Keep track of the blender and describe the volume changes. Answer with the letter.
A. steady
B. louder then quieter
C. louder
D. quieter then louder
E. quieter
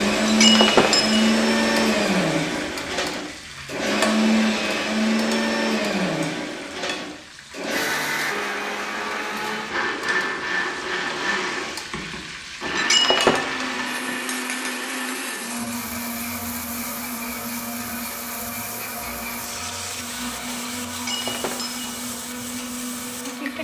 E.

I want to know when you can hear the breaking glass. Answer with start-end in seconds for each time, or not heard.
0.2-1.2, 12.8-13.4, 20.9-21.9.